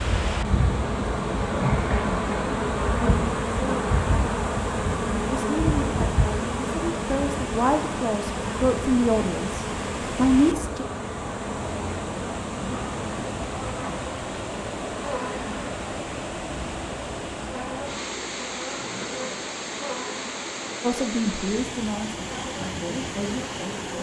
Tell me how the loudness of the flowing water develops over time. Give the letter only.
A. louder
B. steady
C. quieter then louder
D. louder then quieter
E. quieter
B.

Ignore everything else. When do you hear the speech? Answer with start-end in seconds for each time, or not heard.
5.3-10.8, 20.8-23.9.